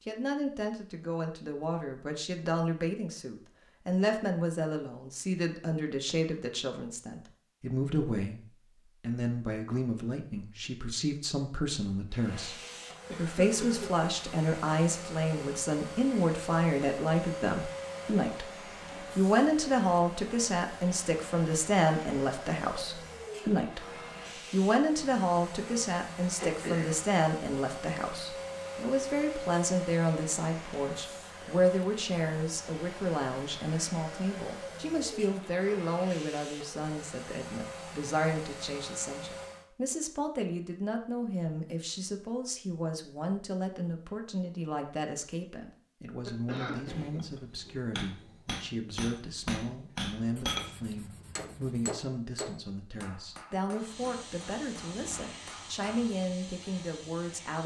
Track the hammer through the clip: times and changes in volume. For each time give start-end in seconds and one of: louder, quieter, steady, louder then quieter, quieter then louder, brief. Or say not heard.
46.9-56.2 louder then quieter.